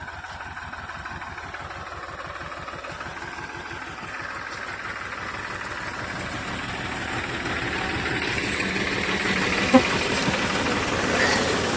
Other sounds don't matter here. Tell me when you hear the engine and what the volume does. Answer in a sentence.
You can hear the engine from 0.0 to 11.7 s, getting louder.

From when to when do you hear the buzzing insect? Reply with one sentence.
You can hear the buzzing insect from 9.2 to 11.7 s.